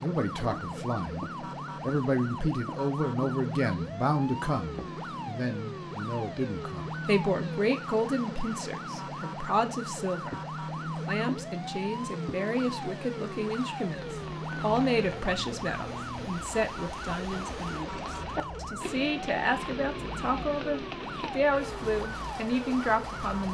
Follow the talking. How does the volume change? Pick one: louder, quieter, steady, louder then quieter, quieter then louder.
steady.